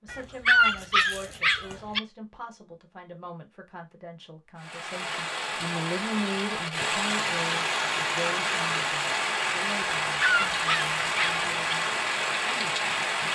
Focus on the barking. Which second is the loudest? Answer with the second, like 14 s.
1 s.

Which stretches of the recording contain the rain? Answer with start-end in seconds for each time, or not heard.
4.6-13.3.